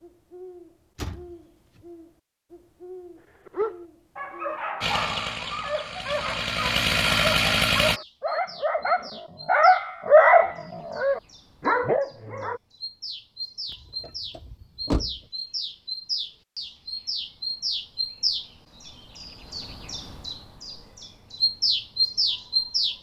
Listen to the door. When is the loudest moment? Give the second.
15 s.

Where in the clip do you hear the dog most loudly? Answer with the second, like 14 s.
10 s.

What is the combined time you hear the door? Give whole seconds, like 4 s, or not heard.
2 s.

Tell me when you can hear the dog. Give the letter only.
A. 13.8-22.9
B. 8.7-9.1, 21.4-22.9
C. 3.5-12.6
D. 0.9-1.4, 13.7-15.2
C.